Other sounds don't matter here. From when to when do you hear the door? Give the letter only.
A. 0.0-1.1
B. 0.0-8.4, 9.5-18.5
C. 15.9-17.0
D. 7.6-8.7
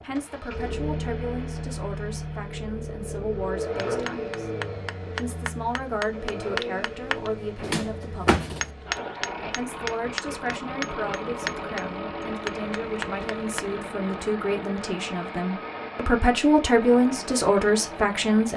D.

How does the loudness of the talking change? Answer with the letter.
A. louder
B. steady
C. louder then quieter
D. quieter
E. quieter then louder
A.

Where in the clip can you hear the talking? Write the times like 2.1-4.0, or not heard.
0.0-8.4, 9.5-18.5.